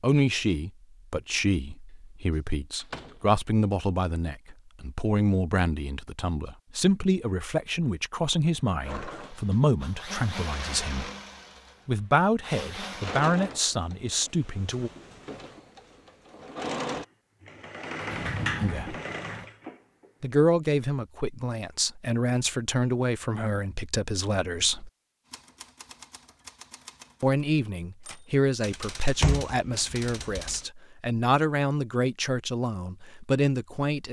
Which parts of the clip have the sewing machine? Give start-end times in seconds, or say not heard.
8.8-20.1.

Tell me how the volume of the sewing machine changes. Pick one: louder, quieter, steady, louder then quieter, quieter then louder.
quieter then louder.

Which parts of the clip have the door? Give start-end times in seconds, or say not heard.
2.8-3.4, 18.0-19.4, 29.2-30.6.